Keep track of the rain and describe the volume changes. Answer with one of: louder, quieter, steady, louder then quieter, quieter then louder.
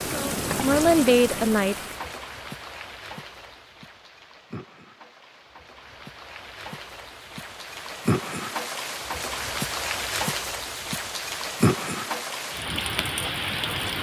quieter then louder.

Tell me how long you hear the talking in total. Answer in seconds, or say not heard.
2 s.